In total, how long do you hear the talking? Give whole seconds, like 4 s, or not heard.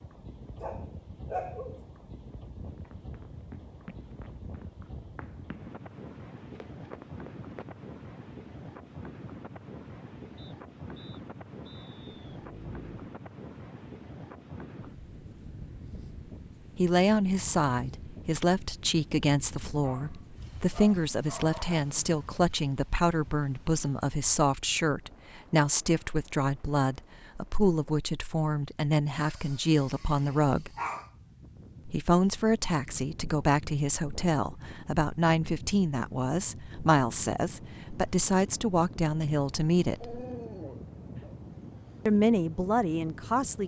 24 s.